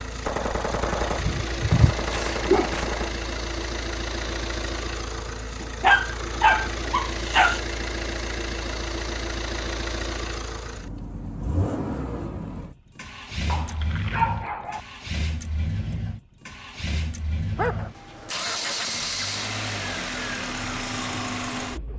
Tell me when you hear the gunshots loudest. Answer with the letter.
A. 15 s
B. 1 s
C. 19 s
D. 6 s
B.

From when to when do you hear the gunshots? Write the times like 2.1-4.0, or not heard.
0.2-3.2.